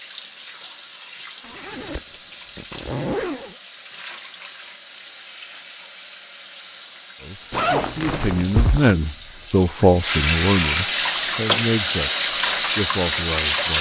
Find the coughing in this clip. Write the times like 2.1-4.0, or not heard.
not heard.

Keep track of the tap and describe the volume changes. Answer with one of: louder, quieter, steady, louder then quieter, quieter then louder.
louder.